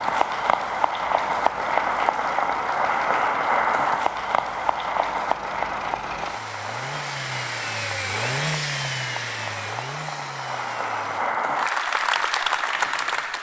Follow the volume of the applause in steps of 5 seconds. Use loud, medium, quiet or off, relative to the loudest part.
loud, medium, loud.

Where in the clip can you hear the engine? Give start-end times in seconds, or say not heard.
0.0-11.4.